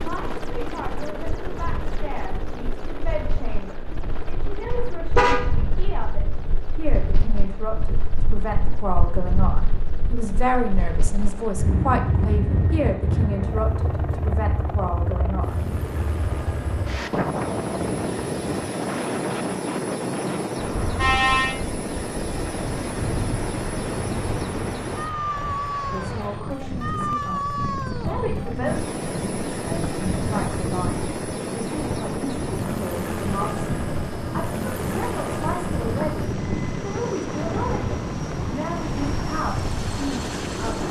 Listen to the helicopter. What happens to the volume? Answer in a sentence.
The volume of the helicopter goes up.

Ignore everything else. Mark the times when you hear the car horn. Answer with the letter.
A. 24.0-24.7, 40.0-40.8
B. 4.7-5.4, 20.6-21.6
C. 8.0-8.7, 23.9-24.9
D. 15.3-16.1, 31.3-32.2
B.